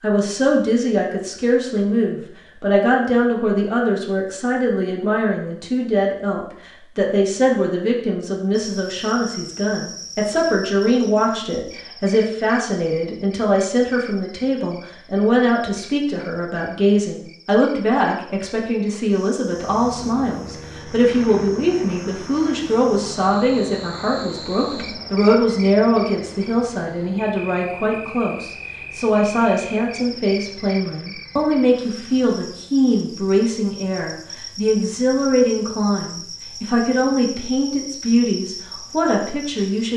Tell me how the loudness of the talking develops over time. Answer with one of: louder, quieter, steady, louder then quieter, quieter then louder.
steady.